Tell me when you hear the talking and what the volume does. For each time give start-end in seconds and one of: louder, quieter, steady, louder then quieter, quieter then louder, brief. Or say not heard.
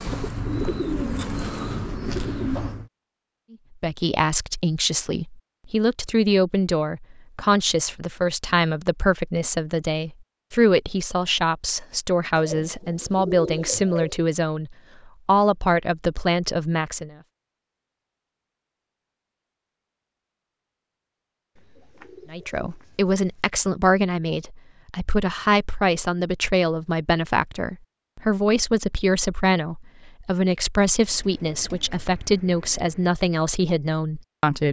3.8-17.1 steady
22.3-34.6 steady.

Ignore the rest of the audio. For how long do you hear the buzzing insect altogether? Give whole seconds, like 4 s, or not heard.
2 s.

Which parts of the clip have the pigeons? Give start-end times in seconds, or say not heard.
0.0-2.9, 12.3-14.2, 21.6-23.3, 31.1-33.1.